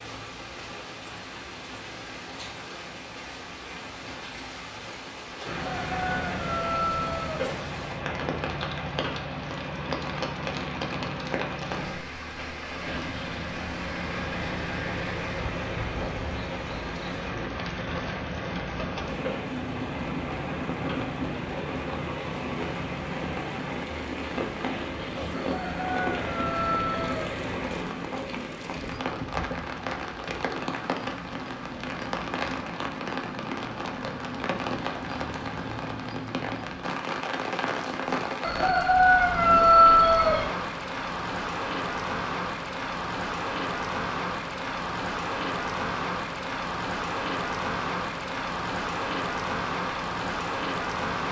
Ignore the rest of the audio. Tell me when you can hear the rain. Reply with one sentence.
The rain can be heard from 0.0 to 51.2 s.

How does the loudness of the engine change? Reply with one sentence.
The loudness of the engine stays about the same.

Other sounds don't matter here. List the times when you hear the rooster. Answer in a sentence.
You can hear the rooster from 5.5 to 7.5 s, from 25.4 to 27.3 s and from 38.4 to 40.5 s.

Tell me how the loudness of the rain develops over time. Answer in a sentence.
The volume of the rain goes up.